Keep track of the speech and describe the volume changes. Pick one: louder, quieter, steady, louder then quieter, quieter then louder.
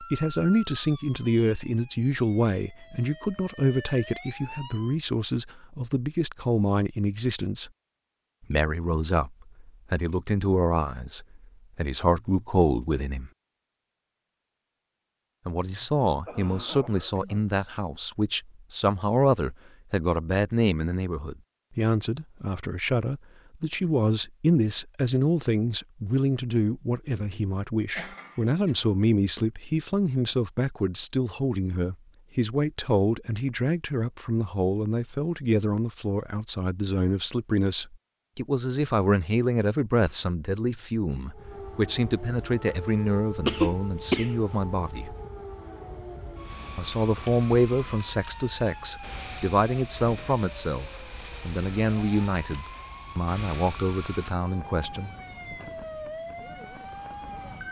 steady.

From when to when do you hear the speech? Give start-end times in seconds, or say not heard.
0.0-7.7, 8.5-13.3, 15.4-45.1, 46.8-55.1.